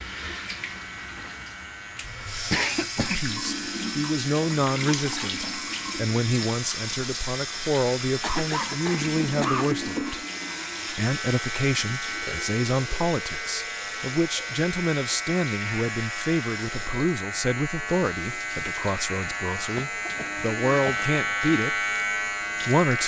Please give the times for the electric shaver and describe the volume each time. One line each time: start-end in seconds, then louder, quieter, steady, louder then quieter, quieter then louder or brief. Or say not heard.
0.2-23.0 louder.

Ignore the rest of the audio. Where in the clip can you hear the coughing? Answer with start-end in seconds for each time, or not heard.
2.0-3.3, 8.2-9.8, 19.8-20.9.